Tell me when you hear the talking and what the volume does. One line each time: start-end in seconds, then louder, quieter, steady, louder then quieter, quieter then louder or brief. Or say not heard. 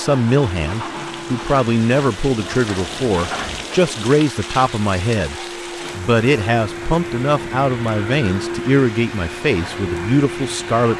0.0-10.9 steady.